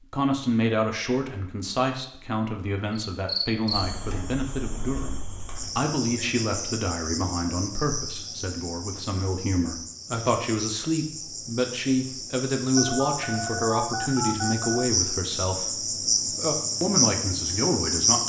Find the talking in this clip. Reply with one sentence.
You can hear the talking from 0.0 to 18.2 s.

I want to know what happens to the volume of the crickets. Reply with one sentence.
The volume of the crickets goes up.